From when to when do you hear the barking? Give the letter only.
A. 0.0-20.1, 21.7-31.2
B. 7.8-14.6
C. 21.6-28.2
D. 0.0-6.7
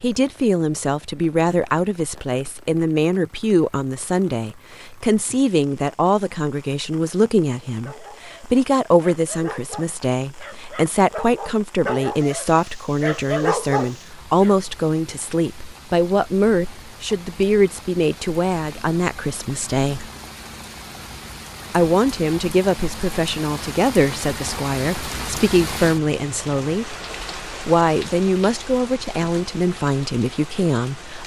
B.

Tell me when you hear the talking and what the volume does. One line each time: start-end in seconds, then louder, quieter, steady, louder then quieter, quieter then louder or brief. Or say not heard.
0.0-20.1 steady
21.7-31.2 steady.